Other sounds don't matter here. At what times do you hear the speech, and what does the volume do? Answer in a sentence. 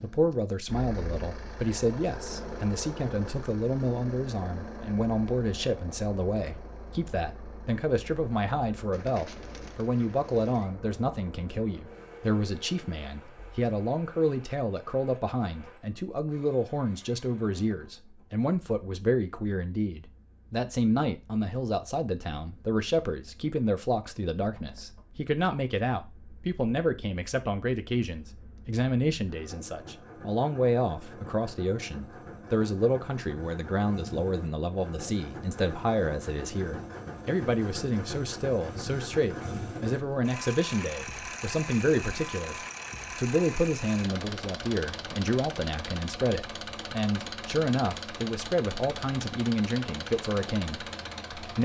The speech can be heard from 0.0 to 51.5 s, at a steady volume.